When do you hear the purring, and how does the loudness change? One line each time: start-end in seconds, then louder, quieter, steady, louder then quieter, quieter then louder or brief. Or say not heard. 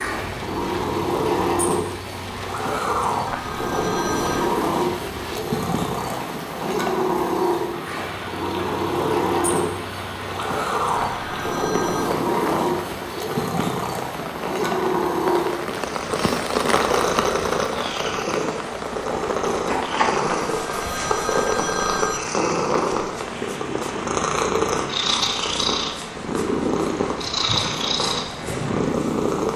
0.0-29.5 steady.